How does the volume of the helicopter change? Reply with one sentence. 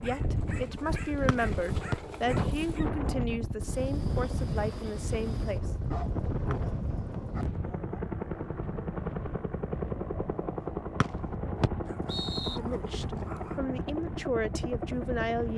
The loudness of the helicopter goes up.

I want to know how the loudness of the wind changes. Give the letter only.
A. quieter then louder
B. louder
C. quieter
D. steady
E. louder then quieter
C.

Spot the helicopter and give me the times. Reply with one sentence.
The helicopter can be heard from 0.0 to 15.5 s.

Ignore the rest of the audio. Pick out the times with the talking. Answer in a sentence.
You can hear the talking from 0.0 to 5.7 s and from 12.4 to 15.5 s.